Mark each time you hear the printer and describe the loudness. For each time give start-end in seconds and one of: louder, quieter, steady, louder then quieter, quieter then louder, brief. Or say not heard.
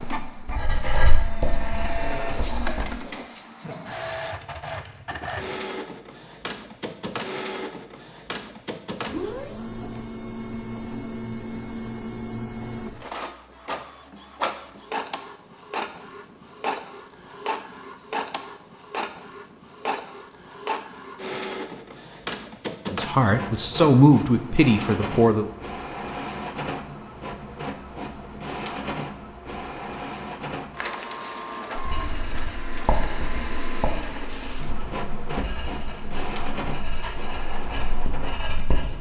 0.0-38.9 steady.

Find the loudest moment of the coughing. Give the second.
2 s.